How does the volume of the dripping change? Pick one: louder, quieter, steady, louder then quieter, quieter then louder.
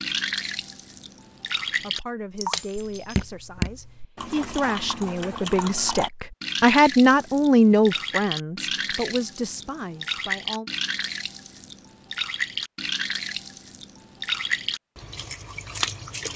steady.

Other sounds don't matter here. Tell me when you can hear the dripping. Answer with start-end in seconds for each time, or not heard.
0.0-16.3.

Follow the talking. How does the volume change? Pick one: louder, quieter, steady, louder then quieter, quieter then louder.
louder then quieter.